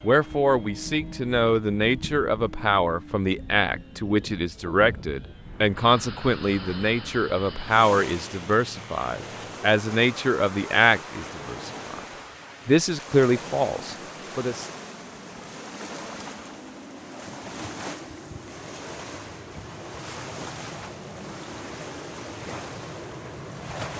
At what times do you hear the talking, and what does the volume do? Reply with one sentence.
You can hear the talking from 0.0 to 12.0 s, at a steady volume; and briefly from 12.7 to 14.7 s.